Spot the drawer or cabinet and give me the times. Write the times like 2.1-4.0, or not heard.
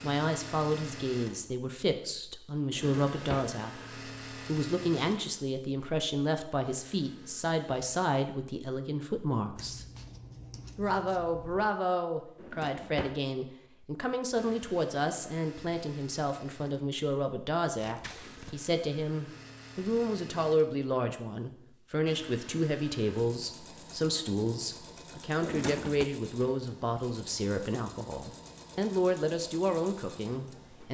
2.7-3.5, 12.3-13.2, 25.4-26.1.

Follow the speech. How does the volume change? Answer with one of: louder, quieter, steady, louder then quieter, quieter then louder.
steady.